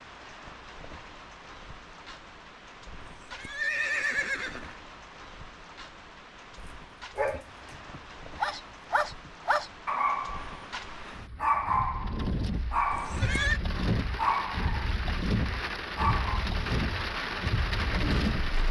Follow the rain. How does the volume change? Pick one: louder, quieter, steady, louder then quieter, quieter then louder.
louder.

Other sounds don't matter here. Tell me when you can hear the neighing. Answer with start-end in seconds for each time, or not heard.
3.0-4.8, 12.9-13.6.